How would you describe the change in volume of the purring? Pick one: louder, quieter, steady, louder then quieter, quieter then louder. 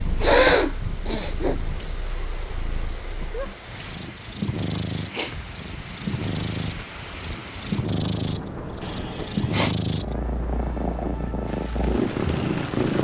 louder.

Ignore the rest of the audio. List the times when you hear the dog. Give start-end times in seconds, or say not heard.
not heard.